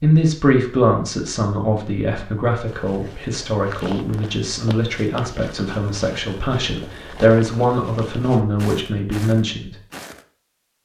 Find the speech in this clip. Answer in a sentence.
You can hear the speech from 0.0 to 9.8 s.